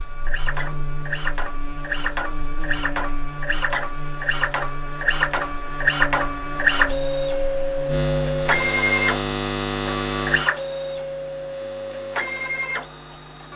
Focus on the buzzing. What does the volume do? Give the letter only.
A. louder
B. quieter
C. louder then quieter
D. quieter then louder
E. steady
C.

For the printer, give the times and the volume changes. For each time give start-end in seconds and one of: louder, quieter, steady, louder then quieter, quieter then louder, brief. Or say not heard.
0.0-13.5 louder then quieter.